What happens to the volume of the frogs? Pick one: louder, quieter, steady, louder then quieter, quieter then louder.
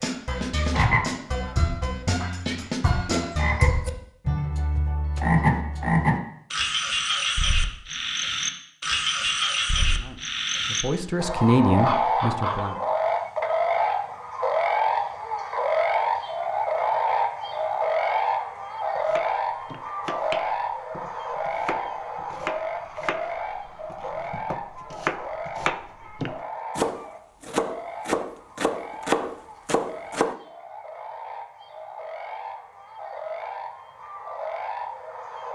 quieter.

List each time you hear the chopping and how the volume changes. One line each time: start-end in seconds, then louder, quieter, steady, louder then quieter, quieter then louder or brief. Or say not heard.
18.9-30.4 louder.